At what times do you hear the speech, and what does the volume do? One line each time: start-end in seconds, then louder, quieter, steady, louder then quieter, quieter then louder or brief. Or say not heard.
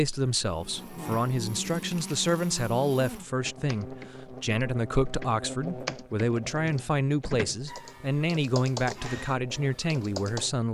0.0-10.6 steady.